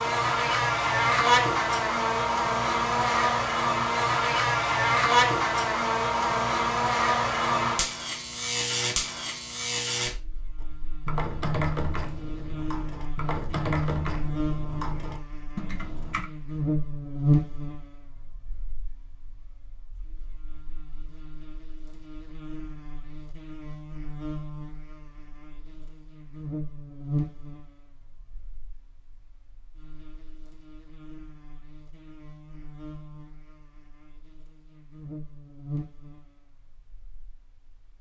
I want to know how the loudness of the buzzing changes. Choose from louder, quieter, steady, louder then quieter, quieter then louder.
quieter.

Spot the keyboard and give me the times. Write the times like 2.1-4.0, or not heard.
10.6-16.3.